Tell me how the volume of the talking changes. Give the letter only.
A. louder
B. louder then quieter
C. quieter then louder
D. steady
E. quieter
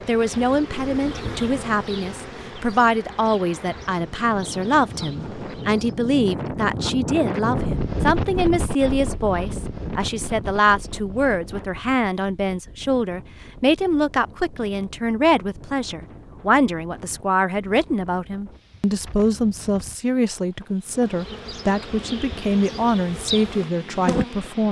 D.